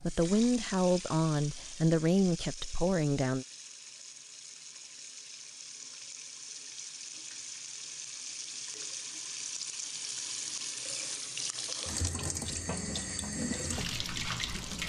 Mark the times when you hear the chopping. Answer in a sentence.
You can't hear the chopping here.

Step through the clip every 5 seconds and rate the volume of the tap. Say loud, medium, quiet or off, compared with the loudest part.
medium, medium, loud.